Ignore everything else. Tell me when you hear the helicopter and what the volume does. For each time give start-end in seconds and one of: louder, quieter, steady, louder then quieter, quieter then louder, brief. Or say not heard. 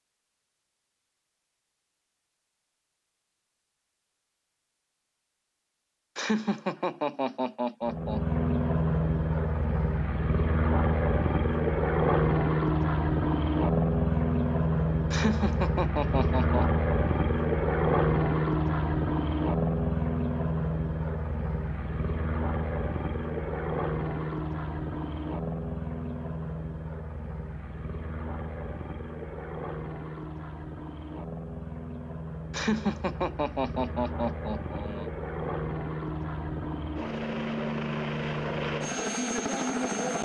7.8-40.1 quieter then louder.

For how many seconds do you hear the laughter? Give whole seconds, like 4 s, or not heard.
6 s.